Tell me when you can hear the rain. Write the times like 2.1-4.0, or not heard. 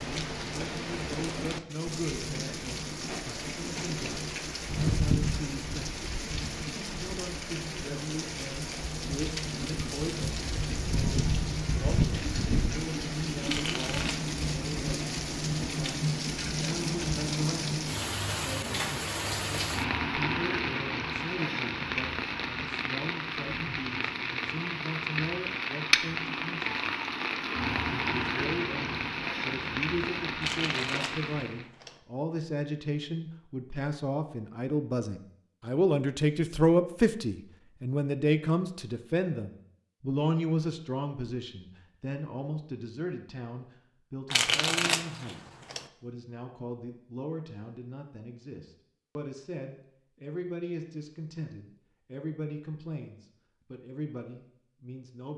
0.0-31.6.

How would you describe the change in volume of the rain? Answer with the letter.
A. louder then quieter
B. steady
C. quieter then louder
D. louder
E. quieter
B.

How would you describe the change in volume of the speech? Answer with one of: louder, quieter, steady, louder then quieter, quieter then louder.
louder then quieter.